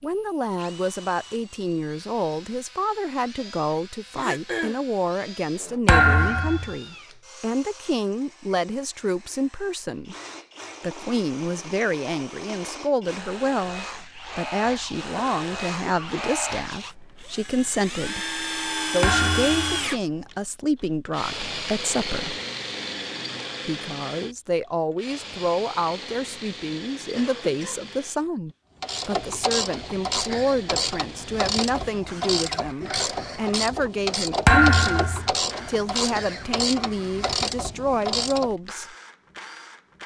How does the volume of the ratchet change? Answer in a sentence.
The volume of the ratchet stays about the same.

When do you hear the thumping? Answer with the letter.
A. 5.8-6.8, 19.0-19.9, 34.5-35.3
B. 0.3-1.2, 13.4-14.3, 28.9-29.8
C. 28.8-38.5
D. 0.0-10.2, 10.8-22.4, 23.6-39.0
A.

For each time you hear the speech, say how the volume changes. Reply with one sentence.
The speech can be heard from 0.0 to 10.2 s, at a steady volume; from 10.8 to 22.4 s, at a steady volume; and from 23.6 to 39.0 s, at a steady volume.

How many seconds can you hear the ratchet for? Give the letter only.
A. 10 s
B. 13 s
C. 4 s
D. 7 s
A.